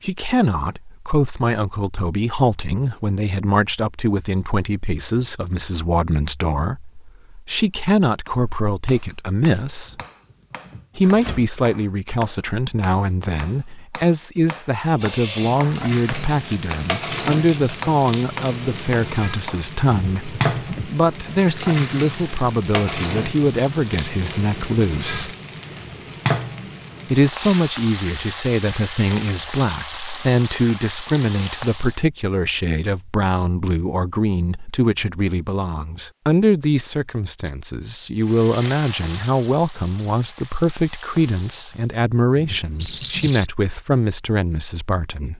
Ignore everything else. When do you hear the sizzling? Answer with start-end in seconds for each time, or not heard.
14.8-32.0, 38.2-41.9.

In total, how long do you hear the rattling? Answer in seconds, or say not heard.
2 s.